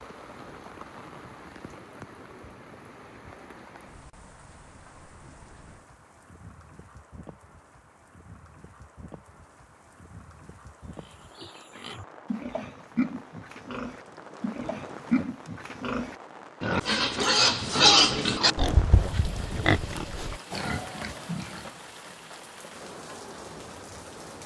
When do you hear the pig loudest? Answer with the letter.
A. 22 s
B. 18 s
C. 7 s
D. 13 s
B.